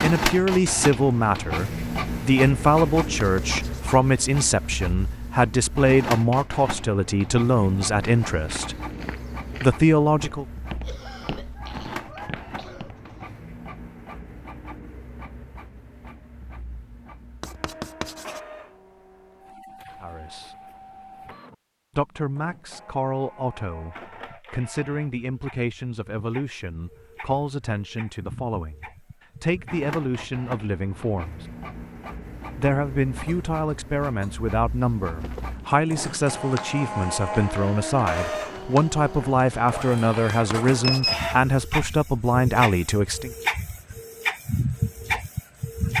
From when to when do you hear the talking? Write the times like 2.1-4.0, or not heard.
0.0-8.8, 9.6-10.4, 20.0-20.6, 21.9-31.4, 32.5-43.3.